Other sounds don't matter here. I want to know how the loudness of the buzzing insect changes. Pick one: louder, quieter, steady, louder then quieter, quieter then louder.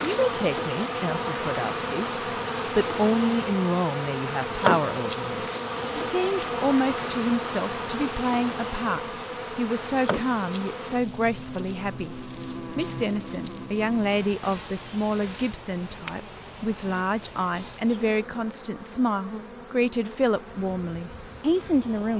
quieter.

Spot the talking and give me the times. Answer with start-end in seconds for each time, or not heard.
0.0-12.2, 12.8-22.1.